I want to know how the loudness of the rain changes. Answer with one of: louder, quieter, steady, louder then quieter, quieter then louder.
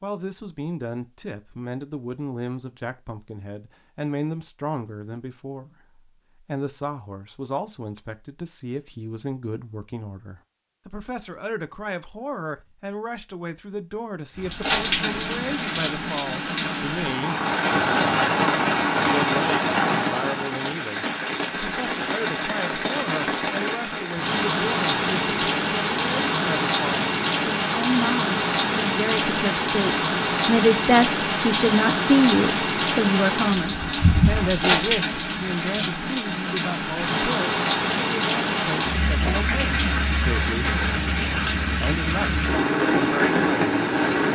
steady.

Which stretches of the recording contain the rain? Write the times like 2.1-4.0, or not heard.
14.3-44.2.